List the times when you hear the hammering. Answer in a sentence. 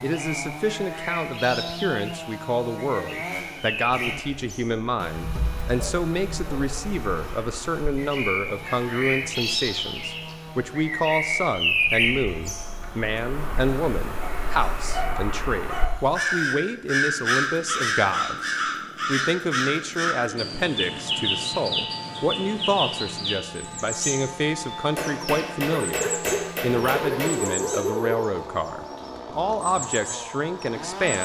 You can hear the hammering from 24.9 to 27.4 s.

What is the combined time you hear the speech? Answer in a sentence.
You can hear the speech for 31 seconds altogether.